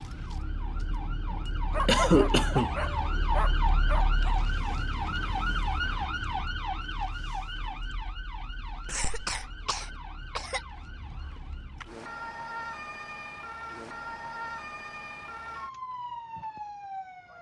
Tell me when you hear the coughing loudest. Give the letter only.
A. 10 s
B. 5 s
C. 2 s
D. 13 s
C.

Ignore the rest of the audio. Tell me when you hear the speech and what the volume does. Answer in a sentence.
You can't hear the speech here.